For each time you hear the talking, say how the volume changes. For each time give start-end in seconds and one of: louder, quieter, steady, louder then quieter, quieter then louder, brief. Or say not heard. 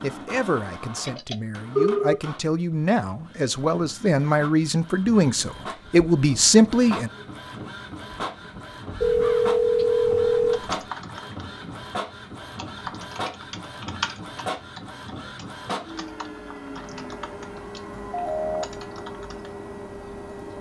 0.0-7.1 louder.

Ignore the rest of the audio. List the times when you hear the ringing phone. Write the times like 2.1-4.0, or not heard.
1.1-2.1, 9.0-10.8, 18.1-18.6.